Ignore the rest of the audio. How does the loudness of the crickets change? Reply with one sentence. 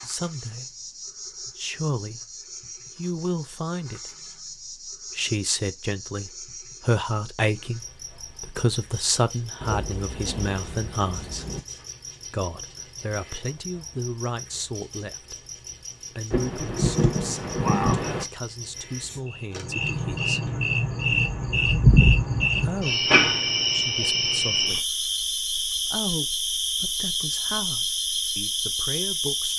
The volume of the crickets goes up.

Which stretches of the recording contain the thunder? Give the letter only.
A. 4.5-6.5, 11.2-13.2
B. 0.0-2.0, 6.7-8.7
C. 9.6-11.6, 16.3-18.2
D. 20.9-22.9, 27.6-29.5
C.